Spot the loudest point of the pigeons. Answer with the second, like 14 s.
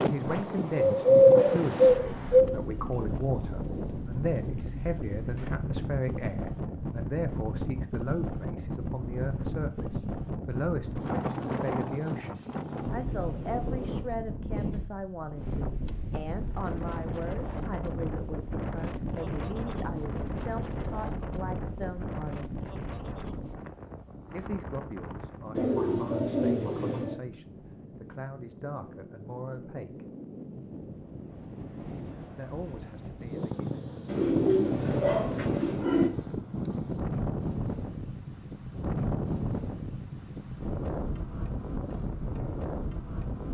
1 s.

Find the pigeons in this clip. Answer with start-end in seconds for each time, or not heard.
0.2-2.5, 25.6-27.1, 34.0-36.1.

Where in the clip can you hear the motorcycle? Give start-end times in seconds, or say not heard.
not heard.